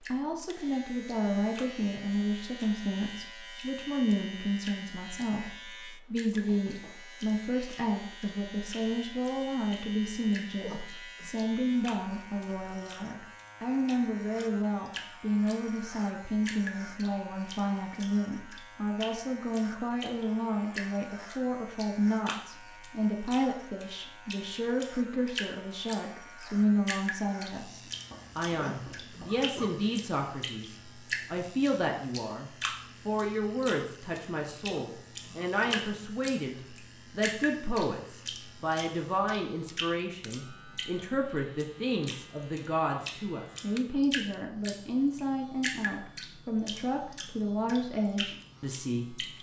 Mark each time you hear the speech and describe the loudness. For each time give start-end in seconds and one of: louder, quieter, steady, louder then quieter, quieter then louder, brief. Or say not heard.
0.1-49.2 steady.